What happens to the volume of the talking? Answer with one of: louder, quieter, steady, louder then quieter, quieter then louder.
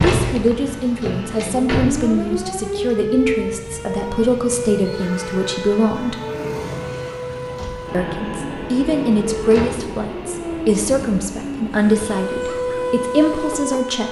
steady.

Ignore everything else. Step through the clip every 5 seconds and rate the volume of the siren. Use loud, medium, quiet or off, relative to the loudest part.
loud, medium, loud.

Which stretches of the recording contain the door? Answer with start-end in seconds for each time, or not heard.
0.0-2.2, 7.3-7.8, 9.4-9.9.